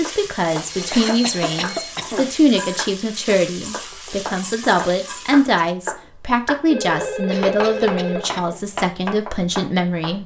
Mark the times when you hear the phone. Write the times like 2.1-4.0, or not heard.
0.2-1.9, 6.7-8.2.